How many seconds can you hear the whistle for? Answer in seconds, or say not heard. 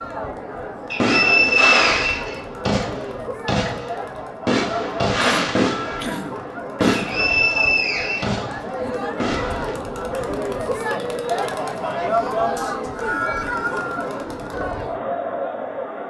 4 s.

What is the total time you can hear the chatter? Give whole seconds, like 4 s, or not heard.
16 s.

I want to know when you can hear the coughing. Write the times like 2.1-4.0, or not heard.
5.2-7.2.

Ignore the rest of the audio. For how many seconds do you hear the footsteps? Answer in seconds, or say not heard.
not heard.